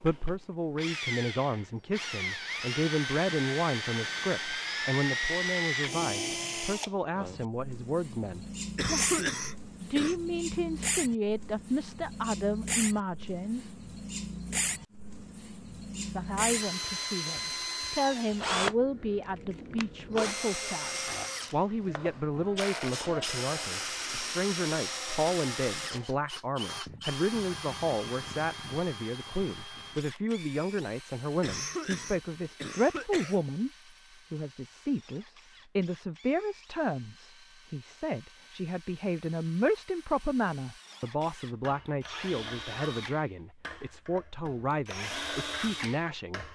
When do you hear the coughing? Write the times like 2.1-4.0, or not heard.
8.8-10.2, 31.4-33.4.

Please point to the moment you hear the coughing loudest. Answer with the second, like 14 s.
9 s.